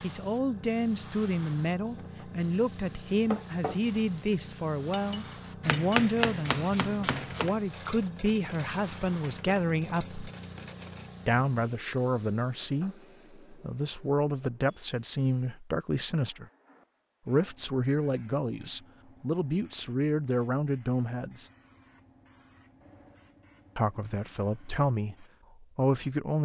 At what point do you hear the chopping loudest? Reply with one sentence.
The loudest moment of the chopping is at 6 seconds.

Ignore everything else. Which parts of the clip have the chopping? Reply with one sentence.
The chopping can be heard from 5.6 to 7.5 s.